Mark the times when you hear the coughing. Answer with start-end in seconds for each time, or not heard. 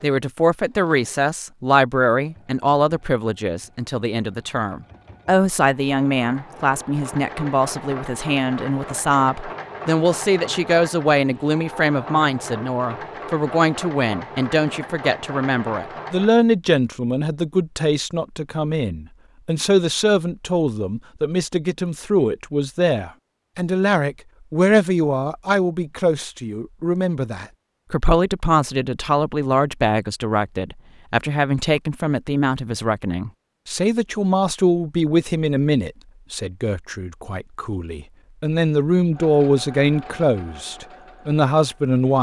not heard.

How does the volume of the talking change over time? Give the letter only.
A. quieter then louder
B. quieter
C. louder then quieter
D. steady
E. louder
D.